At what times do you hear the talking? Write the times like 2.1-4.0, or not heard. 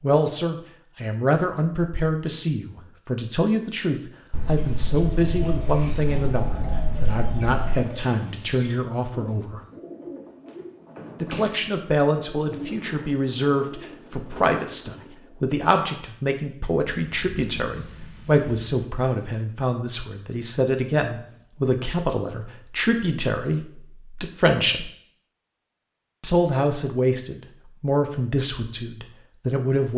0.0-9.6, 11.2-24.9, 26.2-29.9.